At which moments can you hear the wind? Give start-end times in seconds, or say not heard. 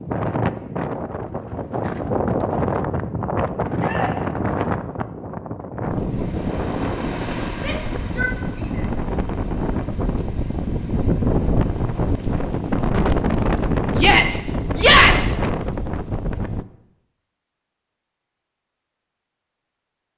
0.0-16.6.